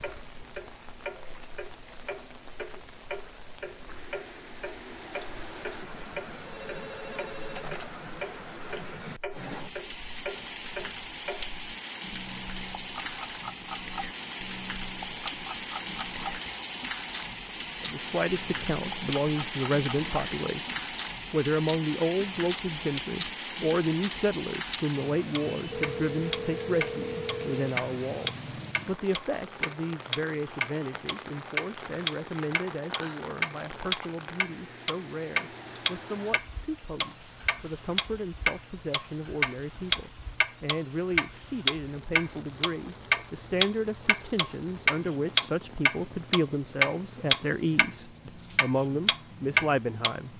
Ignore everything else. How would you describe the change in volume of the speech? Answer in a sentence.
The volume of the speech goes down, then up.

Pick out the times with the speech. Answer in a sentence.
The speech can be heard from 17.8 to 50.3 s.